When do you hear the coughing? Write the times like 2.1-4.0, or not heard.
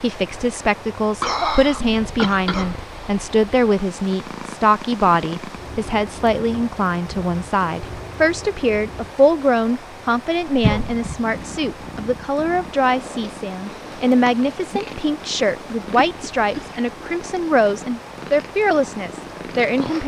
1.2-2.8, 10.6-11.2, 16.1-16.7.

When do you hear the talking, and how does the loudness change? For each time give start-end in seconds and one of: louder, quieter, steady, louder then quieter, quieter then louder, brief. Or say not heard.
0.0-20.0 steady.